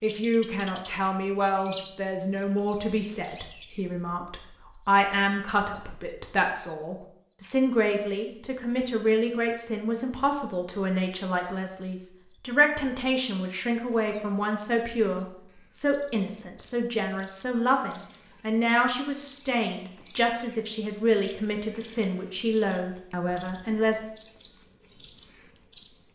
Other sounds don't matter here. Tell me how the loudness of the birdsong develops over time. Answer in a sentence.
The volume of the birdsong goes down, then up.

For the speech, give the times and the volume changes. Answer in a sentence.
The speech can be heard from 0.0 to 24.0 s, at a steady volume.